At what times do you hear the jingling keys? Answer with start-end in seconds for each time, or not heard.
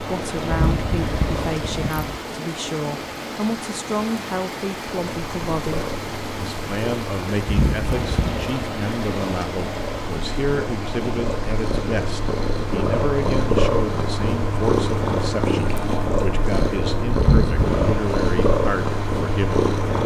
0.5-2.2, 7.5-8.6, 17.1-17.8.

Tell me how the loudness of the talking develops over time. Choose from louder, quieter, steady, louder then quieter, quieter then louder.
steady.